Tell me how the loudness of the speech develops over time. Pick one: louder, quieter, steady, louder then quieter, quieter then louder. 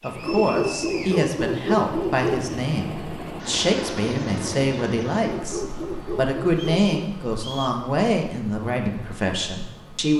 steady.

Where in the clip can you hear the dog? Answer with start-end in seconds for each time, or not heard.
0.2-2.5, 5.2-7.1.